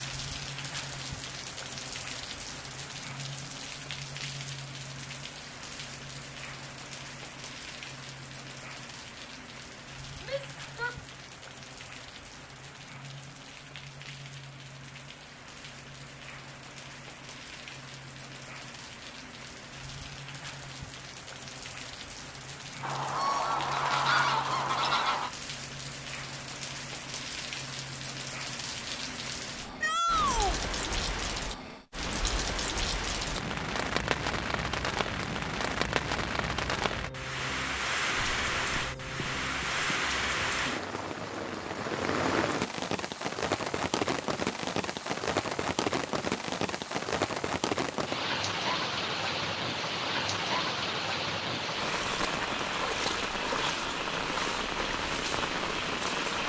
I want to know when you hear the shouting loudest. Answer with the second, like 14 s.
30 s.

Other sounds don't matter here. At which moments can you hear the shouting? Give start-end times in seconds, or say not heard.
10.2-10.9, 29.8-30.6.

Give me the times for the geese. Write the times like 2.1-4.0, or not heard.
22.8-25.3, 38.1-40.0.